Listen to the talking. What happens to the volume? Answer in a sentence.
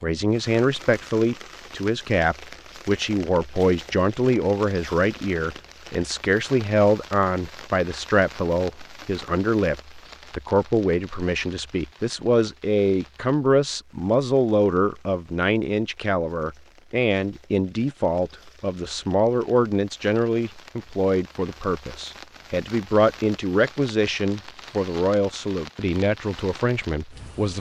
The loudness of the talking stays about the same.